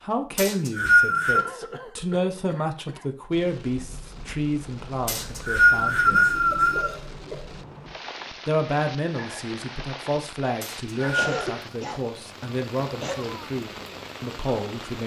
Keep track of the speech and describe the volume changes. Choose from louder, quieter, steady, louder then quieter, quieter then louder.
steady.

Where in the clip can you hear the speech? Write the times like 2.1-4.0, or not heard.
0.0-6.3, 8.4-15.0.